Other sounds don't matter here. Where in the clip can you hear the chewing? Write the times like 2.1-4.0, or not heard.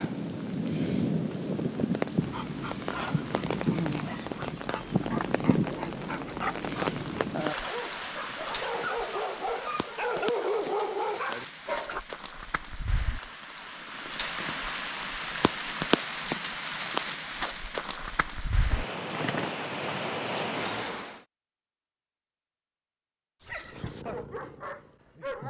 not heard.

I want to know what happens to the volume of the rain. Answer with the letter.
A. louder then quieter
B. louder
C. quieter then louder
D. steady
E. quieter
C.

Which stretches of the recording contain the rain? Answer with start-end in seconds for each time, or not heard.
0.0-21.2.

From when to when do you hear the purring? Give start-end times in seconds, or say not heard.
23.6-25.4.